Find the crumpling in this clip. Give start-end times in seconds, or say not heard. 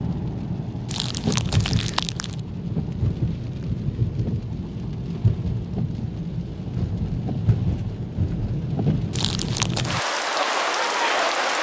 0.8-2.4, 9.1-9.9.